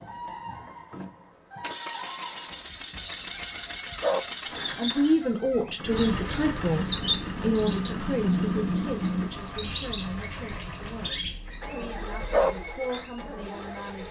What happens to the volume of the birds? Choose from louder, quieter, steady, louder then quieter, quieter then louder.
louder then quieter.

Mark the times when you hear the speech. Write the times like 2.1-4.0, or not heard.
4.8-14.0.